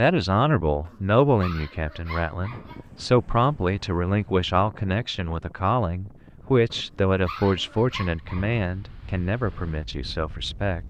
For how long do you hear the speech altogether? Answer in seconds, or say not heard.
11 s.